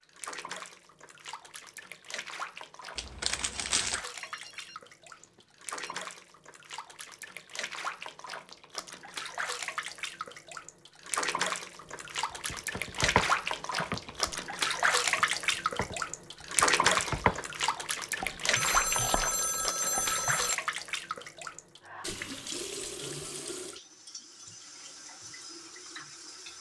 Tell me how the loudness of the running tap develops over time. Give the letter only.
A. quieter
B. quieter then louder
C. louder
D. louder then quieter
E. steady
D.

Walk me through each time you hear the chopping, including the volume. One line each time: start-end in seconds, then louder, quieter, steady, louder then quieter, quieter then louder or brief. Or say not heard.
12.3-14.4 brief
15.2-20.5 louder then quieter.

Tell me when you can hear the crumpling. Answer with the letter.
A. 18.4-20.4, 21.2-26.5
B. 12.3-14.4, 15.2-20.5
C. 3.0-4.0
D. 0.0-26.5
C.